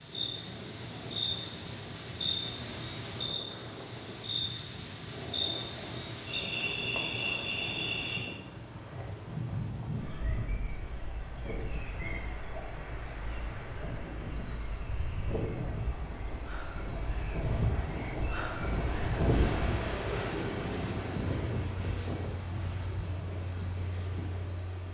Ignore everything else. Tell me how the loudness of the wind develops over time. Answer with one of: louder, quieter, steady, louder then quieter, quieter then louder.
louder.